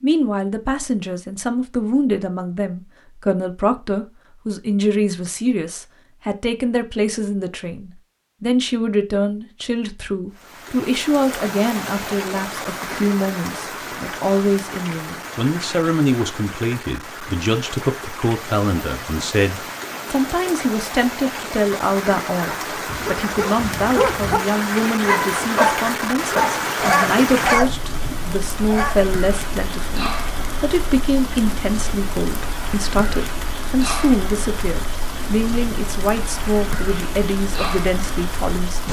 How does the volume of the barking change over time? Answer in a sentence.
The loudness of the barking goes up.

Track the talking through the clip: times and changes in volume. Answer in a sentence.
You can hear the talking from 0.0 to 38.8 s, at a steady volume.